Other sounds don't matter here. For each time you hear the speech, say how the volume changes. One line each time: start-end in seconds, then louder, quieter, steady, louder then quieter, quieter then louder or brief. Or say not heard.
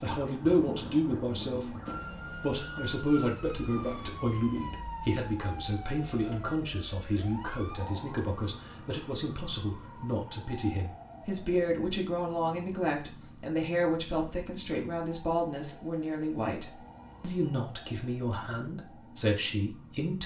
0.0-1.8 brief
2.4-20.2 steady.